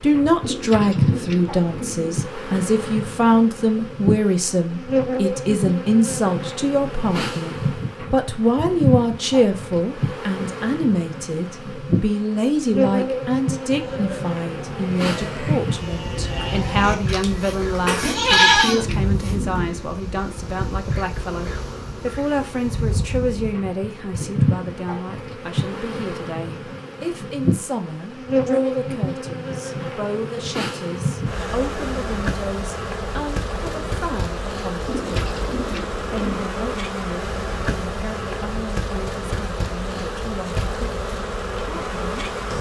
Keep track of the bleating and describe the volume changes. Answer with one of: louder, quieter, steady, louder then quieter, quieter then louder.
louder.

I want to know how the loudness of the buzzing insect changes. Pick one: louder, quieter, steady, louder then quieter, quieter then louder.
steady.